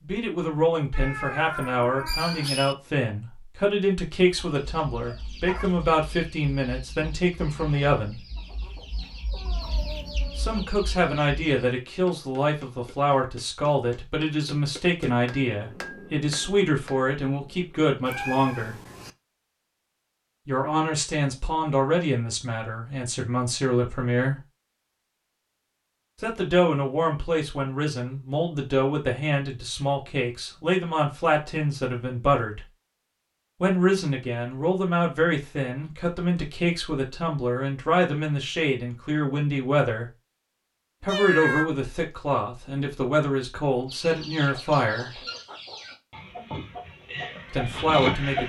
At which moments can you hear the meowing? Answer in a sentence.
The meowing can be heard from 0.9 to 2.8 s, from 18.1 to 19.1 s and from 41.0 to 41.7 s.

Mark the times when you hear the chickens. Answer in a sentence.
The chickens can be heard from 4.3 to 11.7 s and from 43.9 to 48.4 s.